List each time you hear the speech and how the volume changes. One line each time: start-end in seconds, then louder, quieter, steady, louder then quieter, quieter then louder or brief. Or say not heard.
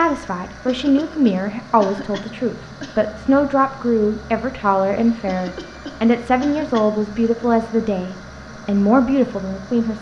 0.0-9.9 steady.